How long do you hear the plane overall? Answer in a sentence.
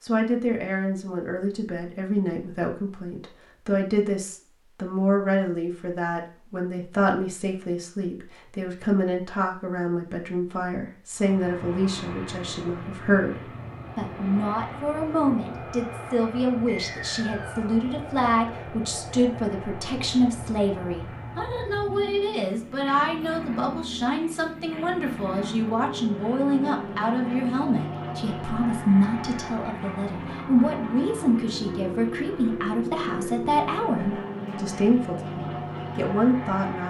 You can hear the plane for 26 seconds altogether.